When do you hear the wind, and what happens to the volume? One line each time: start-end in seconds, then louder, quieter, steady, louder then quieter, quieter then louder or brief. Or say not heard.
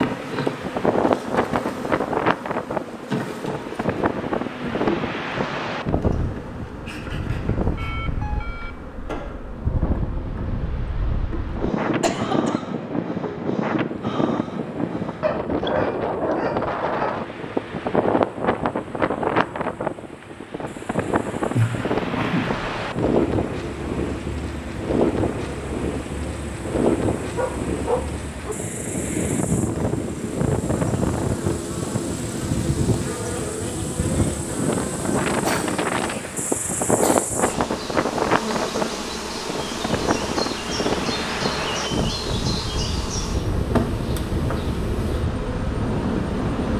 0.0-46.7 steady.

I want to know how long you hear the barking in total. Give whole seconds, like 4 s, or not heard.
3 s.